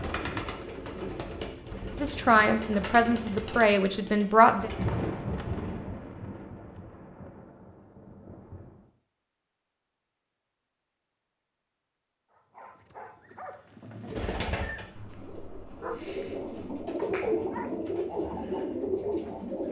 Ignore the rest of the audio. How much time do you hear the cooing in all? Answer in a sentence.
The cooing can be heard for 11 seconds in total.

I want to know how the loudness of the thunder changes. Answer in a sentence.
The volume of the thunder goes down.